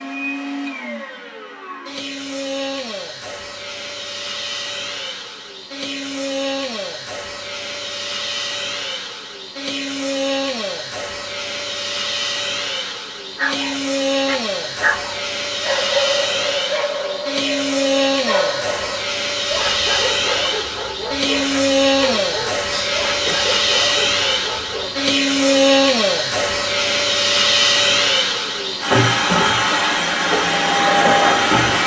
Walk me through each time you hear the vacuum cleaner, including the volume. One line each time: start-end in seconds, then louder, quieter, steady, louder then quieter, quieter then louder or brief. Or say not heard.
0.0-31.8 louder.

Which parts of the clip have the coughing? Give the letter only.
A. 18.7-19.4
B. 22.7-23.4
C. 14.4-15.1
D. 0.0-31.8
B.